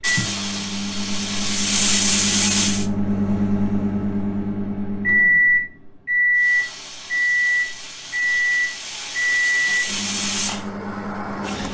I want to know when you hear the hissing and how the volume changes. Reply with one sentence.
The hissing can be heard briefly from 0.0 to 2.9 s; and from 6.3 to 11.6 s, getting louder.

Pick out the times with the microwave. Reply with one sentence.
The microwave can be heard from 0.0 to 11.6 s.